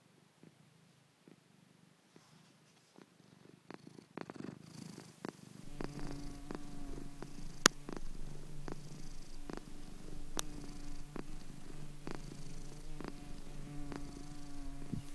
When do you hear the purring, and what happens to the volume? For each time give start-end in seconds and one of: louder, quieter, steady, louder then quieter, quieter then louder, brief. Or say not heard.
0.0-15.0 louder then quieter.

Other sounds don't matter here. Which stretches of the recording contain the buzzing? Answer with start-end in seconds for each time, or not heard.
5.6-15.0.